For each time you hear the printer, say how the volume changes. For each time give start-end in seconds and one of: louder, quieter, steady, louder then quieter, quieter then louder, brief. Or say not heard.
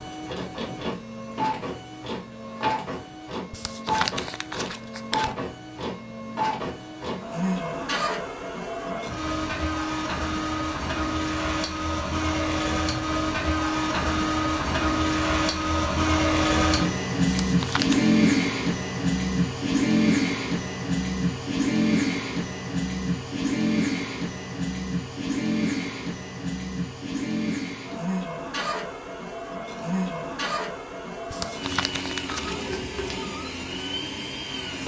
0.0-34.8 louder then quieter.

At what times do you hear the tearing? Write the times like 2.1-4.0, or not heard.
3.5-5.3, 17.4-18.1, 31.3-32.8.